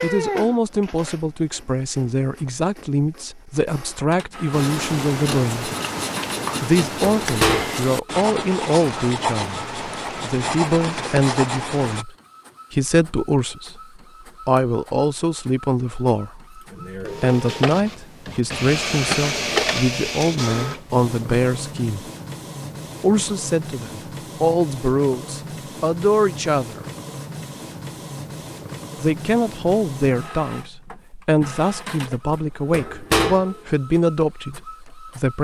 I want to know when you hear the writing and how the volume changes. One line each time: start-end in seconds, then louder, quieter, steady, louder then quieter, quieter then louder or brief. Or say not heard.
4.5-12.1 steady.